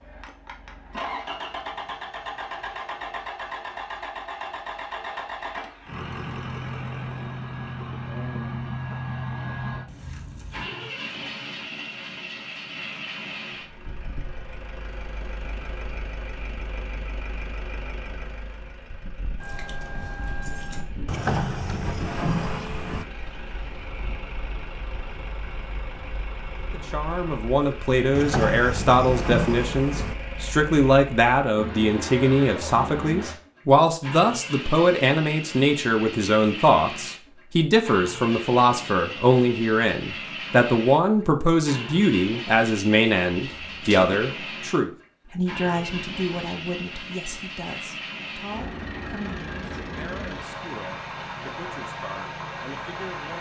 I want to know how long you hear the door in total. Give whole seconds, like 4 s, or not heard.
4 s.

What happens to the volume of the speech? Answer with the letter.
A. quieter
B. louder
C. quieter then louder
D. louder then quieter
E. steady
A.